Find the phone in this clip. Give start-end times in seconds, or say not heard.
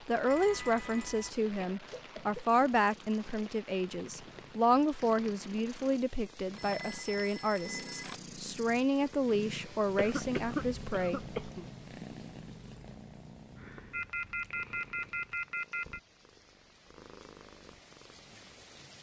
0.2-1.3, 6.5-8.2, 13.9-16.0.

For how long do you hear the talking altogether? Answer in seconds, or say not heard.
11 s.